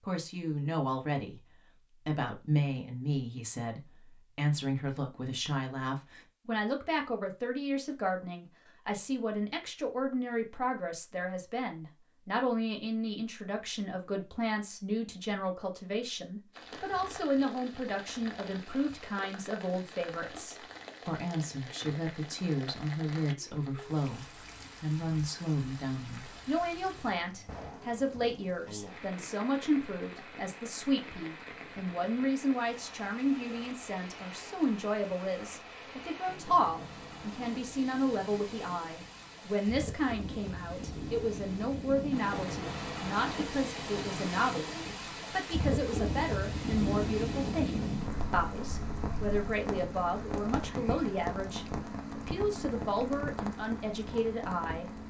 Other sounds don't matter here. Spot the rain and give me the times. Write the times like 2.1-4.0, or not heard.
16.5-55.0.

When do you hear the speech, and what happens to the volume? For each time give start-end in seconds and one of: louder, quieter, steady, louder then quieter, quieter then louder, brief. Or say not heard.
0.0-1.4 brief
2.0-54.9 steady.